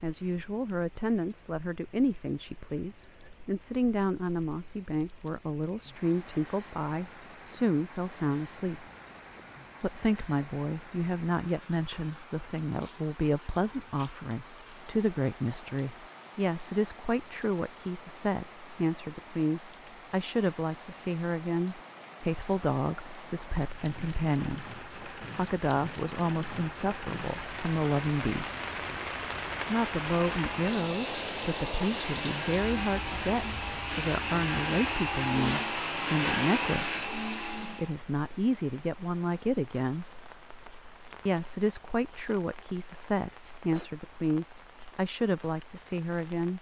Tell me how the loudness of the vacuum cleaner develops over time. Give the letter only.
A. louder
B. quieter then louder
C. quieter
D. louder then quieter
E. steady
A.